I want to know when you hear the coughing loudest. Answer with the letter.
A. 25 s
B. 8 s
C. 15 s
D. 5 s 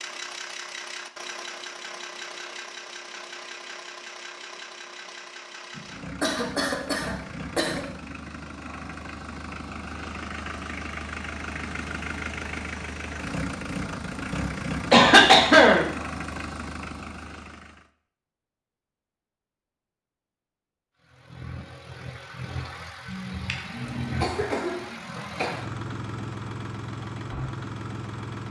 C.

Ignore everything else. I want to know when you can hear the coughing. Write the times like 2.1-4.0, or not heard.
5.8-7.8, 14.9-15.8, 23.1-25.5.